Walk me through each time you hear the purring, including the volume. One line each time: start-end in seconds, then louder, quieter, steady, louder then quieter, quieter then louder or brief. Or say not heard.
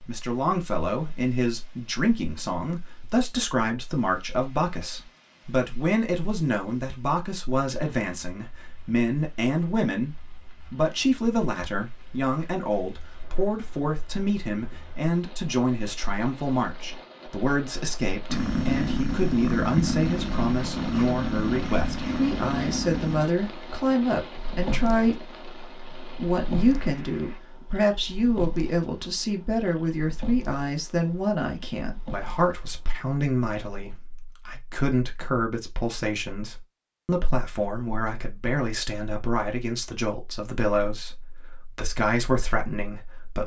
18.3-33.0 quieter.